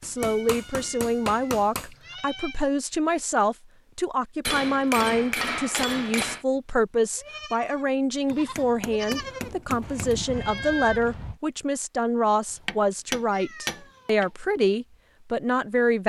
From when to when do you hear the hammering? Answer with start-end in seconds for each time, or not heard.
0.0-1.9, 4.5-6.5, 8.2-10.2, 12.7-14.3.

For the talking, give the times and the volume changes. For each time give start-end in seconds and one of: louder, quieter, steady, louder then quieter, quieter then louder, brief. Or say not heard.
0.0-16.0 steady.